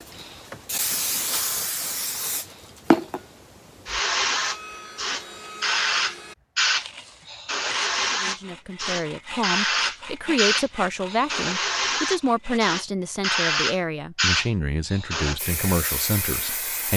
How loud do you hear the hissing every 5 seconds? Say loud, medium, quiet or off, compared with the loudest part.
loud, loud, loud, medium.